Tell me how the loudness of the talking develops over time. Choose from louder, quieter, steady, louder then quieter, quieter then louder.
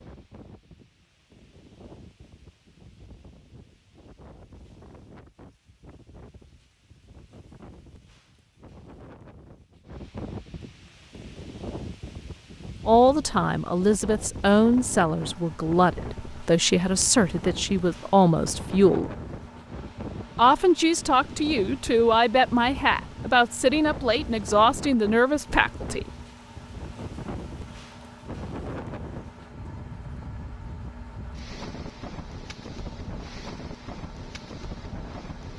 steady.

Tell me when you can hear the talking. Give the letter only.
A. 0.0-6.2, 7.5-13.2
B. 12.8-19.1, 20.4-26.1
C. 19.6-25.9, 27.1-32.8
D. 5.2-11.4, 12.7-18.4
B.